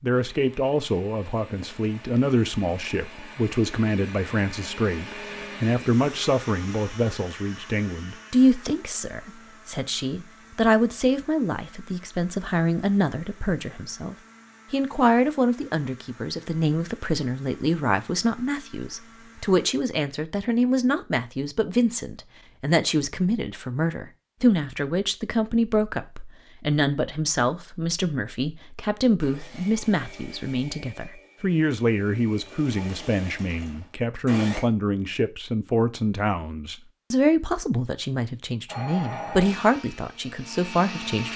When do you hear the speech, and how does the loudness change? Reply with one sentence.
You can hear the speech from 0.0 to 41.3 s, at a steady volume.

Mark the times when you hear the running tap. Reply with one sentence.
The running tap can't be heard in this clip.